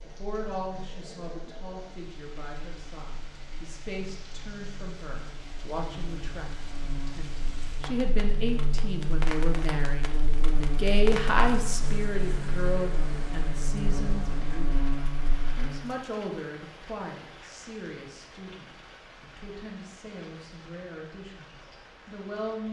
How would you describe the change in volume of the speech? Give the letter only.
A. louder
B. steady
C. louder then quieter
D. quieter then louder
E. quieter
C.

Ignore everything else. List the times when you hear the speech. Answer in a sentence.
You can hear the speech from 0.0 to 14.9 s and from 15.6 to 22.6 s.